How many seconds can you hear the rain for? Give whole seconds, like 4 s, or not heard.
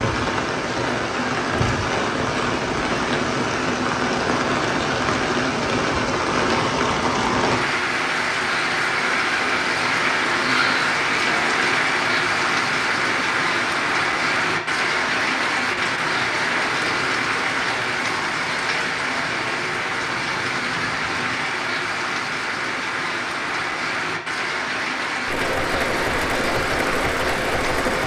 28 s.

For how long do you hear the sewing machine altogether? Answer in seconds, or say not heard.
3 s.